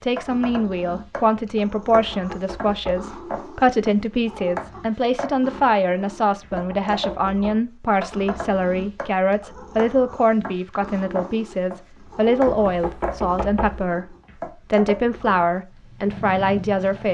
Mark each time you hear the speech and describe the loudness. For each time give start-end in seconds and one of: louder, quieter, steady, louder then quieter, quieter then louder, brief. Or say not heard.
0.0-17.0 steady.